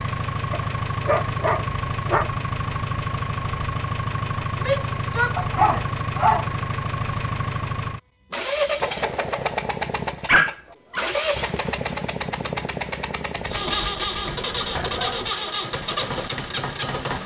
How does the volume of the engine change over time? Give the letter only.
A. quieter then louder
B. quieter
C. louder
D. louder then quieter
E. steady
E.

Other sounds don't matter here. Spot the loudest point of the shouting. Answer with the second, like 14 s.
5 s.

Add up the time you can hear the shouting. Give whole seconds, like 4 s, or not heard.
2 s.